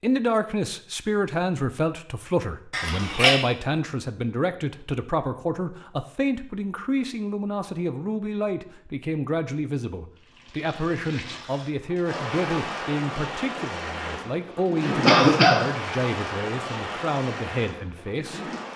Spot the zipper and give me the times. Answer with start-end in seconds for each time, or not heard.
not heard.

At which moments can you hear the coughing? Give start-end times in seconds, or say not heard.
2.7-3.4, 15.1-15.7.